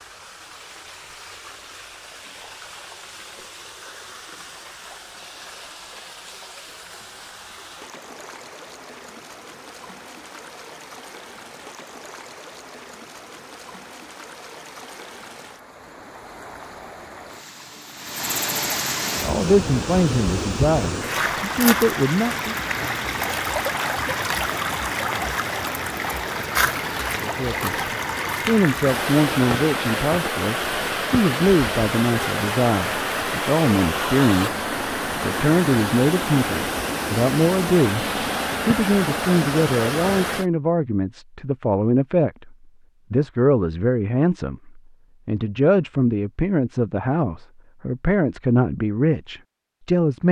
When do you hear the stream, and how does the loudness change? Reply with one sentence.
You can hear the stream from 0.0 to 40.5 s, getting louder.